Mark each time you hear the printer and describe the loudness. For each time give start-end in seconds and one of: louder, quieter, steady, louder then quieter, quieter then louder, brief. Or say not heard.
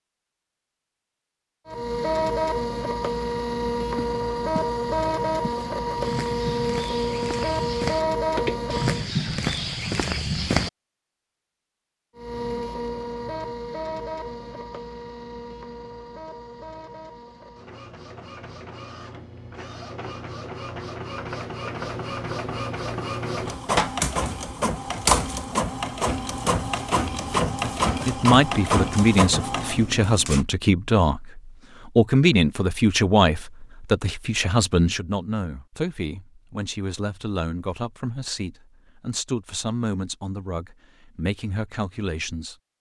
1.6-9.1 steady
12.2-30.4 quieter then louder.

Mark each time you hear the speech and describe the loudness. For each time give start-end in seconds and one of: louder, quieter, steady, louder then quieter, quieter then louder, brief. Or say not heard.
28.1-42.5 quieter.